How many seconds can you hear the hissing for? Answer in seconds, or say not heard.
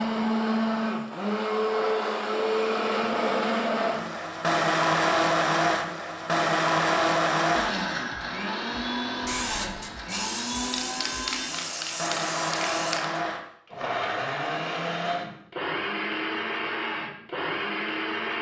4 s.